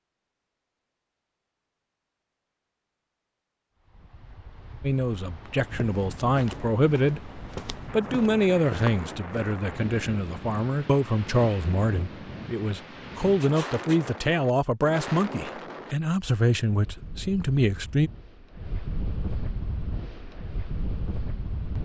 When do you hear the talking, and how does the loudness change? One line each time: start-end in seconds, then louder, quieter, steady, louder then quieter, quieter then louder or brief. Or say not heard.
4.8-18.1 steady.